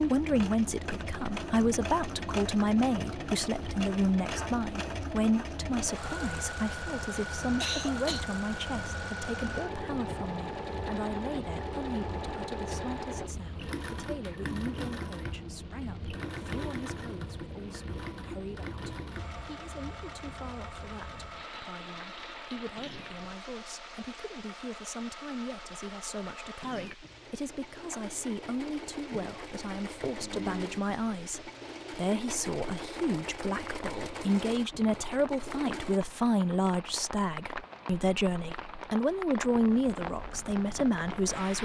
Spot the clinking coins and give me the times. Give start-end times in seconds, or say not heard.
not heard.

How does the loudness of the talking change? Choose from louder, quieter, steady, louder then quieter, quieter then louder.
quieter then louder.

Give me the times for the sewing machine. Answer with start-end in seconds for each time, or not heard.
0.0-36.0.